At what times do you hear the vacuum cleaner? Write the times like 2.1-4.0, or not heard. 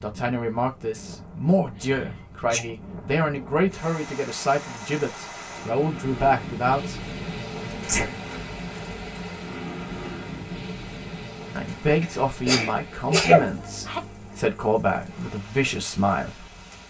not heard.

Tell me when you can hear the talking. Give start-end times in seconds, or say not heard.
0.0-7.0, 11.5-16.5.